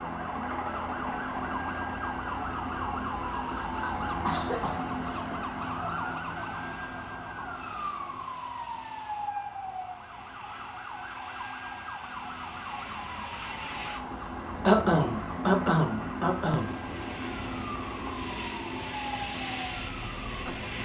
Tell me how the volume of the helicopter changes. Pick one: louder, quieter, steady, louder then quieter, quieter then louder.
quieter then louder.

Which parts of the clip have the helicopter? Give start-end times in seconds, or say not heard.
0.0-20.7.